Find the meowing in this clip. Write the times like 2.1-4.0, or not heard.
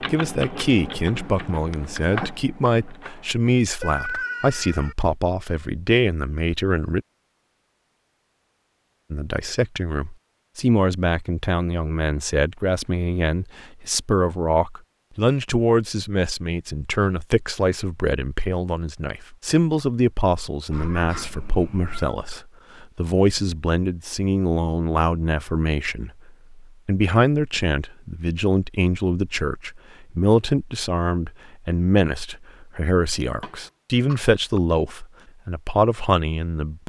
3.8-5.0, 20.7-22.1.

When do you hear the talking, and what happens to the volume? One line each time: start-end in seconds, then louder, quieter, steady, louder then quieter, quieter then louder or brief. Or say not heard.
0.0-7.0 steady
9.1-36.8 steady.